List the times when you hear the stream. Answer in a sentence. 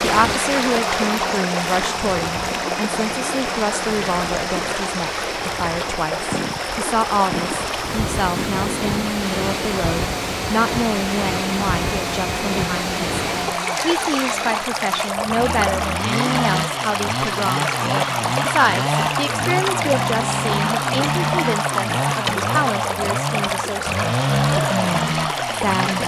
The stream can be heard from 0.0 to 26.0 s.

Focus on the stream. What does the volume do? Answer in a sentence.
The volume of the stream stays about the same.